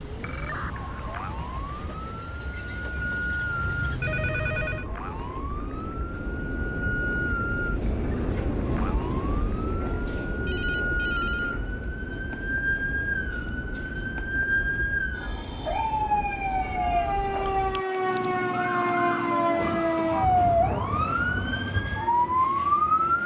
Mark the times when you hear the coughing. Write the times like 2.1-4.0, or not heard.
not heard.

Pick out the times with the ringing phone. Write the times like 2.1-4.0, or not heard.
3.4-4.9, 10.4-11.6, 16.6-17.6.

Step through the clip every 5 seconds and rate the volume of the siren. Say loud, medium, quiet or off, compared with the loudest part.
quiet, quiet, medium, loud, loud.